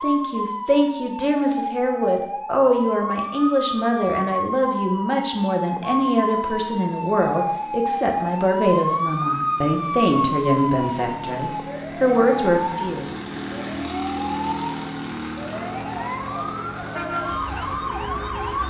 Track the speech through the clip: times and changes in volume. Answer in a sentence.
The speech can be heard from 0.0 to 13.2 s, at a steady volume.